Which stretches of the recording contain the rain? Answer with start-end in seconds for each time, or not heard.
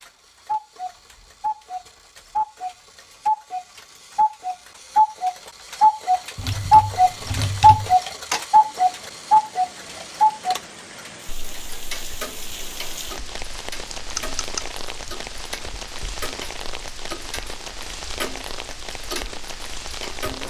8.4-20.4.